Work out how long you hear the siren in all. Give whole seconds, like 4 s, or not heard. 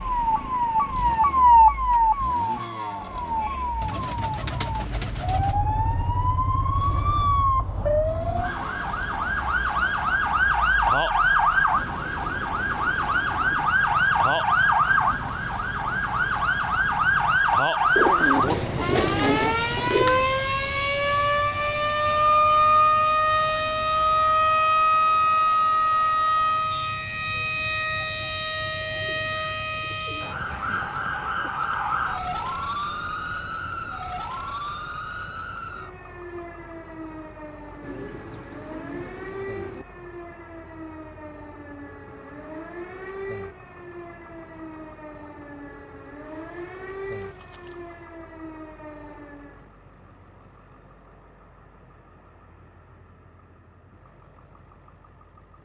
50 s.